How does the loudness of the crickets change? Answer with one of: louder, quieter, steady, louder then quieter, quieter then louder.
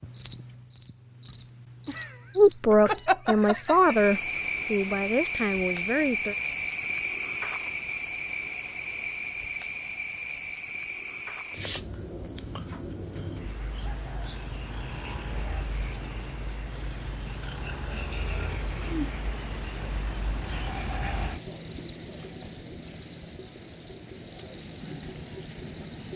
quieter then louder.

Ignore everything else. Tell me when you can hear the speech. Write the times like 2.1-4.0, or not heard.
2.4-6.3.